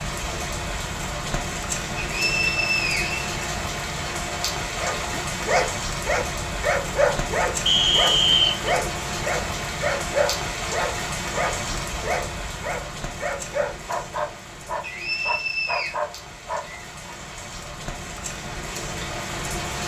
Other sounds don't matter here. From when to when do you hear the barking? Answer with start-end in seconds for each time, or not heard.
4.8-17.1.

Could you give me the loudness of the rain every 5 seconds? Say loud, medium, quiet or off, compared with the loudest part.
loud, loud, loud, medium.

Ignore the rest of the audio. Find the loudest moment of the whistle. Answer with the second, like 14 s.
8 s.